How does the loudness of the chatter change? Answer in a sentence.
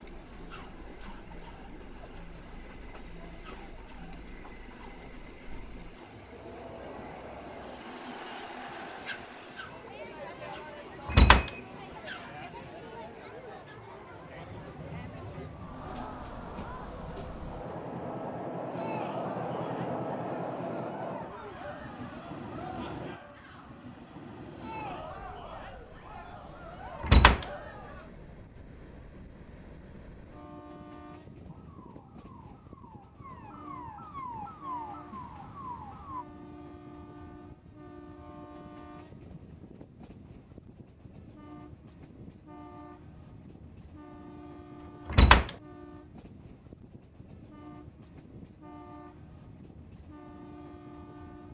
The loudness of the chatter goes up.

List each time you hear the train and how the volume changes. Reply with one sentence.
You can hear the train from 0.0 to 51.4 s, getting louder then quieter.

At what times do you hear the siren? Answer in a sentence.
You can hear the siren from 31.4 to 36.2 s.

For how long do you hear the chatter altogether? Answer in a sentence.
You can hear the chatter for 28 seconds altogether.